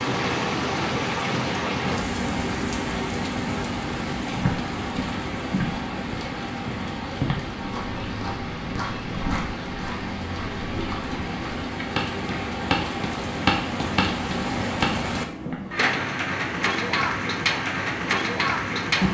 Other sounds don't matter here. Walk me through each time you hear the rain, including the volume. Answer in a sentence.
The rain can be heard from 0.0 to 19.0 s, getting quieter then louder.